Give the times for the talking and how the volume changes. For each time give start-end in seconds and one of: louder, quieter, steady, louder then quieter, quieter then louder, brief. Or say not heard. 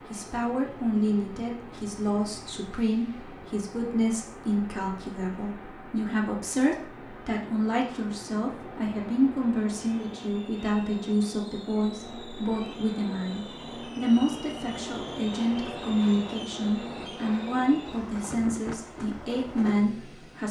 0.1-20.4 steady.